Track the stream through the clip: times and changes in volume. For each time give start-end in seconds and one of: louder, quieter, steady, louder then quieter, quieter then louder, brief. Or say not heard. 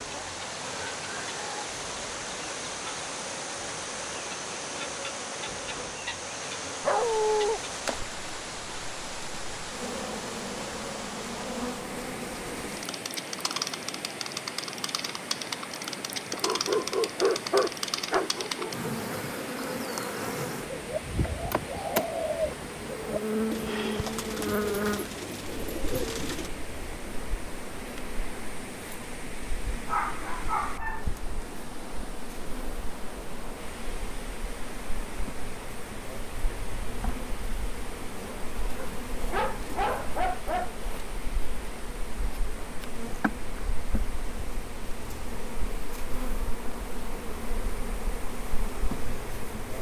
0.0-49.7 quieter.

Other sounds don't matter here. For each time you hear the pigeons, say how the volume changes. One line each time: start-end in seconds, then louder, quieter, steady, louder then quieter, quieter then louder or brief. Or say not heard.
20.6-26.5 steady.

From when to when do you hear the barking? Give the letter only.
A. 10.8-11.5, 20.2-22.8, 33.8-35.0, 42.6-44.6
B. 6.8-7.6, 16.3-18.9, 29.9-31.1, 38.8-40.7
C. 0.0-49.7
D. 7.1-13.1
B.